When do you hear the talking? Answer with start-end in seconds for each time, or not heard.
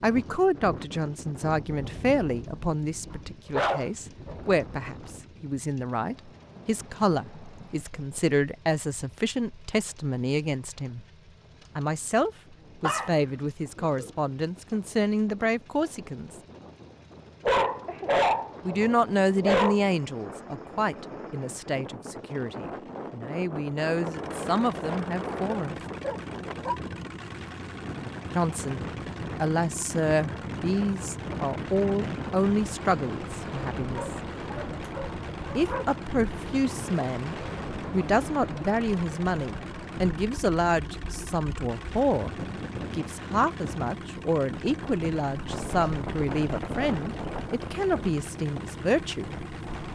0.0-11.1, 11.8-16.4, 18.6-25.8, 28.4-34.1, 35.5-49.3.